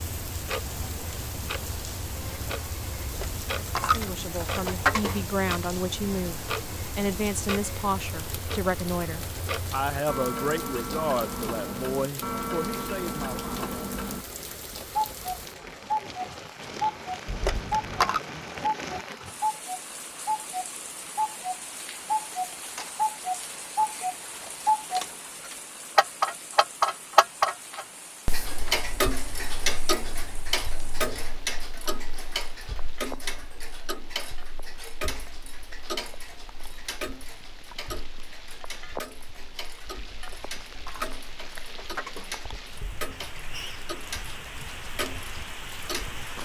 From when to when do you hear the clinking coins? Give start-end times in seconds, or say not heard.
3.0-5.2, 17.2-18.2, 40.1-42.4.